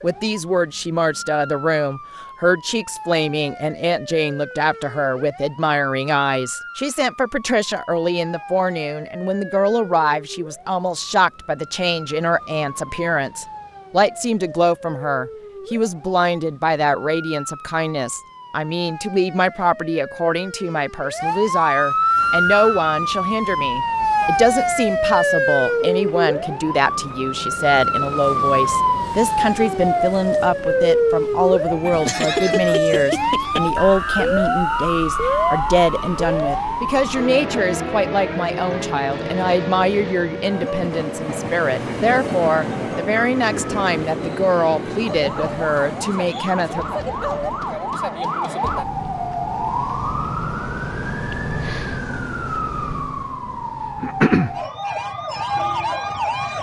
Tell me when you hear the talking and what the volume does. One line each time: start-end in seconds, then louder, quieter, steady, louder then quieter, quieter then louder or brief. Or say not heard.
0.0-46.9 steady.